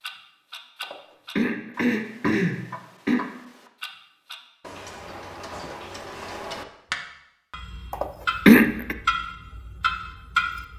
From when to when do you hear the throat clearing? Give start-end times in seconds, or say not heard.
0.8-3.2, 7.9-8.9.